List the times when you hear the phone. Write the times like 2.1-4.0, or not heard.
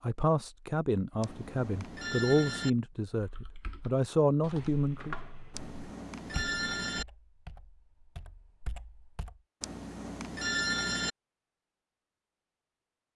1.2-2.7, 5.5-7.0, 9.6-11.1.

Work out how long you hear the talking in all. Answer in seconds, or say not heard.
5 s.